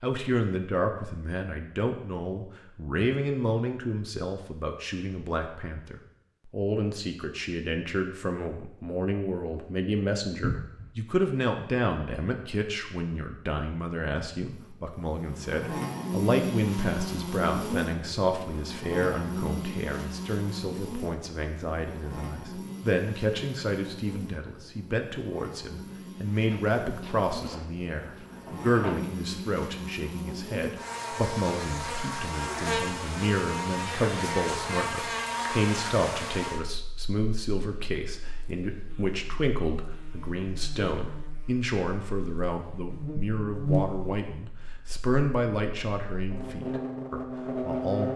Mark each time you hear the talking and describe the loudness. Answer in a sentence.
The talking can be heard from 0.0 to 48.1 s, at a steady volume.